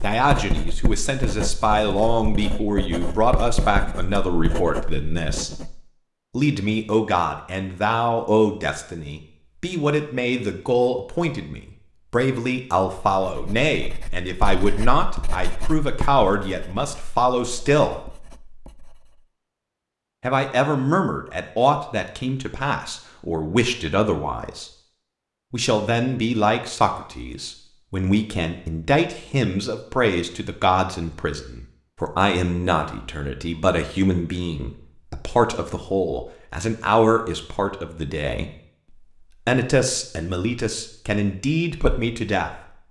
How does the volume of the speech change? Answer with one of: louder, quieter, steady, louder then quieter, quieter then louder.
steady.